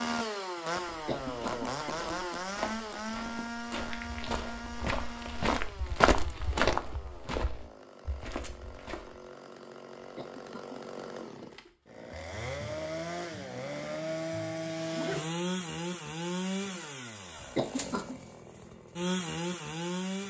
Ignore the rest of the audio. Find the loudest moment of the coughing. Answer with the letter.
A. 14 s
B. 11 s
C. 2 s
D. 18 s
D.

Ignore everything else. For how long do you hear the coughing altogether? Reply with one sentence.
You can hear the coughing for 4 seconds altogether.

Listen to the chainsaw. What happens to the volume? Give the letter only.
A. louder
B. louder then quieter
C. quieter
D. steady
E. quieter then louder
E.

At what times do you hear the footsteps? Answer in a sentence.
You can hear the footsteps from 0.8 to 9.2 s.